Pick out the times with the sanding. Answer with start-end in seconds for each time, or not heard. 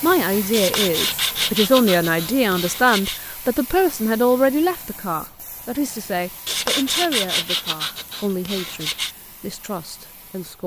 0.5-3.2, 6.5-9.2.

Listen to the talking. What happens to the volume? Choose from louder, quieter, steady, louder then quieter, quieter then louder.
quieter.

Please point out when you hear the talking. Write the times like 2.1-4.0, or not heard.
0.0-10.6.